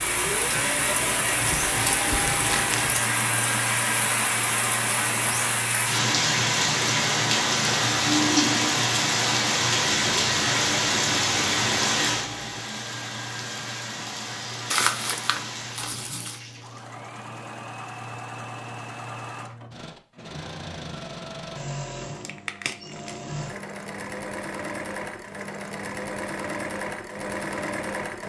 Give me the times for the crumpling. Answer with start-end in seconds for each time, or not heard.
1.4-3.0, 14.7-16.4, 22.1-23.2.